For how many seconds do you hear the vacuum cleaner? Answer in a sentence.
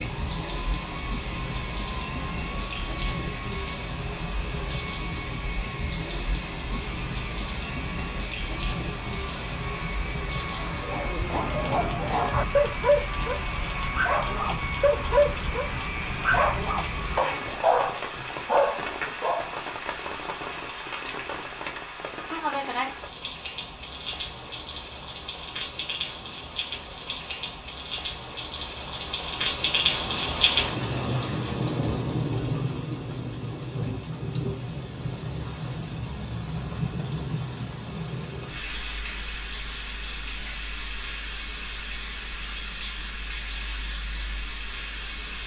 You can hear the vacuum cleaner for 17 seconds altogether.